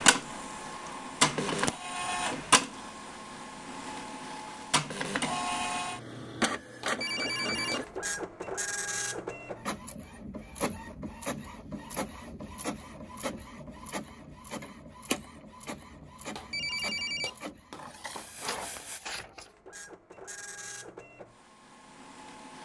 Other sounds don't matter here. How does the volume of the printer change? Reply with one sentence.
The loudness of the printer goes down.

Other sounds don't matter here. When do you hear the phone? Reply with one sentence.
You can hear the phone from 6.8 to 8.0 s and from 16.4 to 19.0 s.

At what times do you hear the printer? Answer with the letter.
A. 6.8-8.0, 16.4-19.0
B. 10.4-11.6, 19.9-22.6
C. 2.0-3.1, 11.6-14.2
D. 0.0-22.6
D.